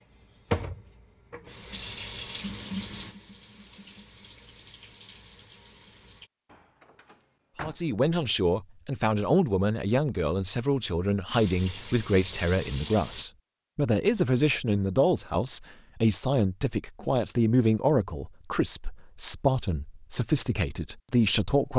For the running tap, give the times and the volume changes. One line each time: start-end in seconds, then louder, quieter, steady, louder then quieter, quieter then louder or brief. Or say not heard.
0.1-6.3 quieter
11.3-13.2 brief.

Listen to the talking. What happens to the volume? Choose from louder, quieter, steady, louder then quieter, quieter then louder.
steady.